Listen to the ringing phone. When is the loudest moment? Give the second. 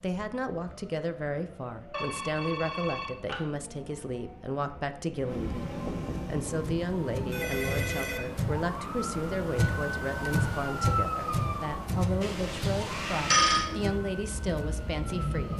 13 s.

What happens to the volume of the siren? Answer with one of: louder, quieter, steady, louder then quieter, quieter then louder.
louder then quieter.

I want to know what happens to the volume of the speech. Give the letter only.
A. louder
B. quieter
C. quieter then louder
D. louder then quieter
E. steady
E.